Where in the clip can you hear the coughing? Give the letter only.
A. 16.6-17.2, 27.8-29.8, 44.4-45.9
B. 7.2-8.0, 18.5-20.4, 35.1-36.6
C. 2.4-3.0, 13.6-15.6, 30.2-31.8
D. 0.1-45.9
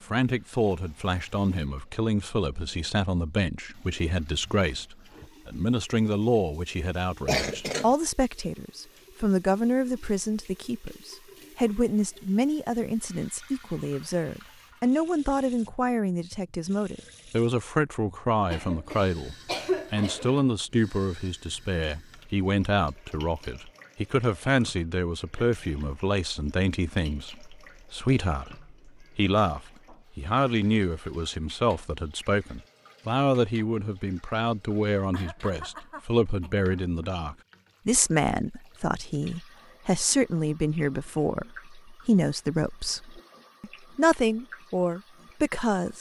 B.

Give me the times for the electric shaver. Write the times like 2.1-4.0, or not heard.
not heard.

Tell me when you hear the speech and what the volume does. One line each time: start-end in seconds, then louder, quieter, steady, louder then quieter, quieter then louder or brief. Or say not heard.
0.1-45.9 steady.